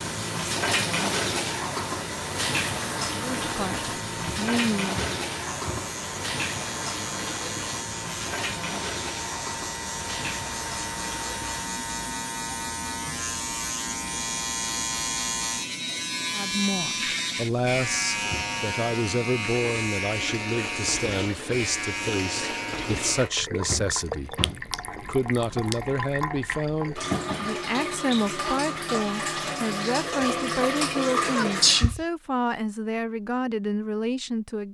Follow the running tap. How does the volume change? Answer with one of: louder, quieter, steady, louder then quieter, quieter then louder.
quieter then louder.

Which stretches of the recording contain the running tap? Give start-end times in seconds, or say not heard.
0.0-31.9.